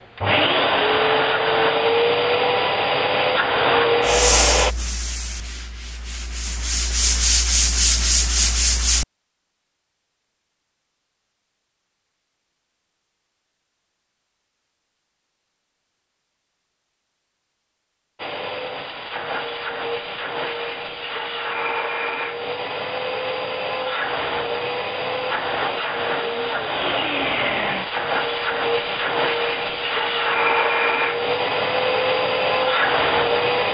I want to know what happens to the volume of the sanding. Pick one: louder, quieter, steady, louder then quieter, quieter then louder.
quieter then louder.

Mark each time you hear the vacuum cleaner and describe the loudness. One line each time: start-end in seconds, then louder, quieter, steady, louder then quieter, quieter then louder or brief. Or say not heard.
0.1-4.8 steady
18.1-33.7 louder.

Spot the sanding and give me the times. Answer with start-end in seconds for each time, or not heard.
4.0-9.1.